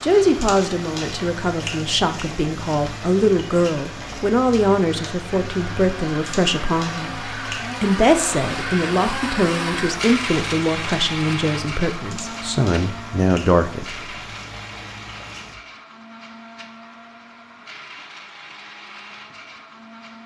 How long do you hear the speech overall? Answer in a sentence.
The speech can be heard for 14 seconds in total.